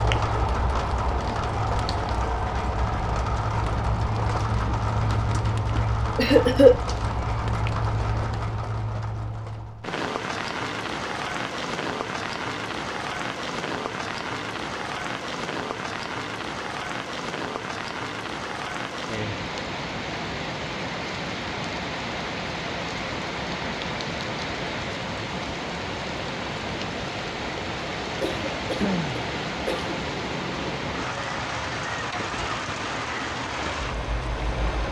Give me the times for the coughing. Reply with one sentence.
You can hear the coughing from 5.8 to 6.8 s and from 28.2 to 29.9 s.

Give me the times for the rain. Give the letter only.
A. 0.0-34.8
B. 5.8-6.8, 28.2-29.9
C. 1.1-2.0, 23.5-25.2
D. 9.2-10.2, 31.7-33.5
A.